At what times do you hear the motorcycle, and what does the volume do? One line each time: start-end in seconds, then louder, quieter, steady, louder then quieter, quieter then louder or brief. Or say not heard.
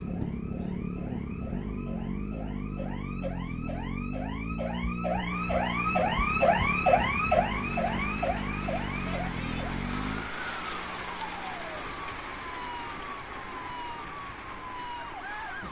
0.0-15.6 quieter.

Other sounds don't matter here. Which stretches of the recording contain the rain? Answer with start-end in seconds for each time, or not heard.
5.3-15.6.